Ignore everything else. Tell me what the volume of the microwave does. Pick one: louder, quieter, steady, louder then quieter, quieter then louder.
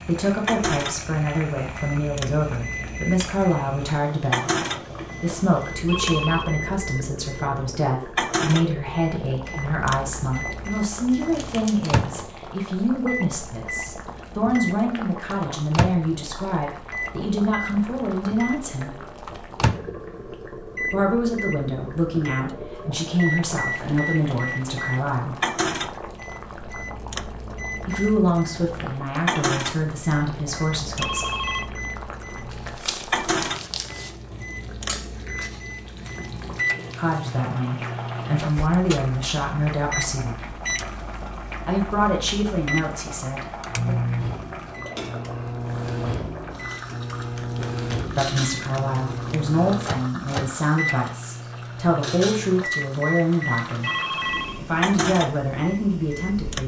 steady.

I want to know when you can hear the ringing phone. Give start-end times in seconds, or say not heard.
5.8-6.5, 30.9-31.7, 53.8-54.6.